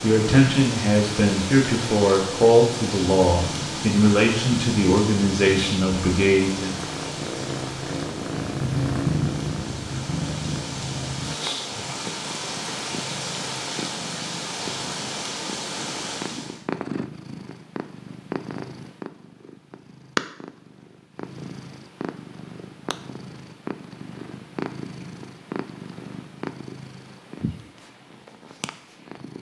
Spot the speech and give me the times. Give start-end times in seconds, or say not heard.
0.0-6.8.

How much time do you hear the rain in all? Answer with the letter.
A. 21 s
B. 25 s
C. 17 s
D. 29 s
C.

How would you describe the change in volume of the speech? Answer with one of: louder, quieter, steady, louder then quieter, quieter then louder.
steady.